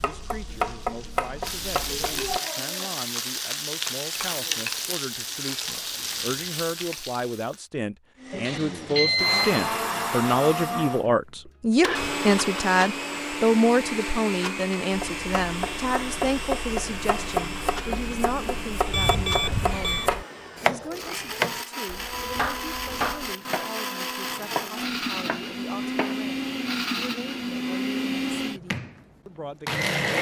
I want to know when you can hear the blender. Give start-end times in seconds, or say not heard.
8.2-30.1.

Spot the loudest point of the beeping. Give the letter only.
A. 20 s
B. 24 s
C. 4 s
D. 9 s
D.